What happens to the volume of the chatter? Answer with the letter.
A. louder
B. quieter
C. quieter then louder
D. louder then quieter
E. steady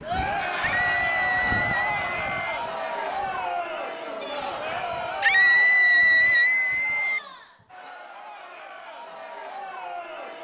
B.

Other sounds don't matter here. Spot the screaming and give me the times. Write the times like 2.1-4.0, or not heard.
0.6-2.6, 5.2-7.2.